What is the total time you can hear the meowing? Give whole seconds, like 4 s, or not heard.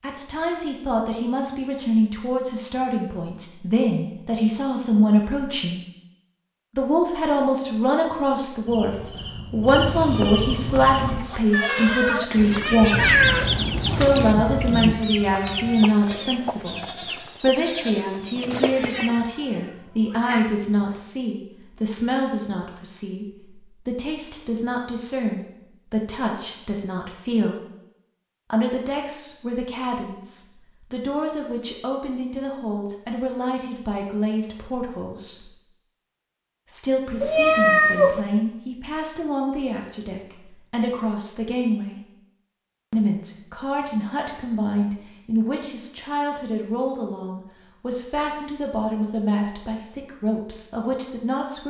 5 s.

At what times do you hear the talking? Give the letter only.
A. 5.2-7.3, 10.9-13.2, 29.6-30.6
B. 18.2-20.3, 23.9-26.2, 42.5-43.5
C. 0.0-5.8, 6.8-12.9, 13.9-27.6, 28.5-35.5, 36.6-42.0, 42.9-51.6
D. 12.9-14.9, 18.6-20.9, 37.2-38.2
C.